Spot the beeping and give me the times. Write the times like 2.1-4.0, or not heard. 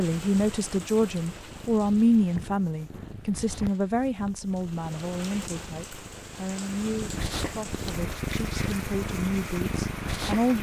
not heard.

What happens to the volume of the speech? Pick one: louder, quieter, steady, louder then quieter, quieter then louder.
quieter.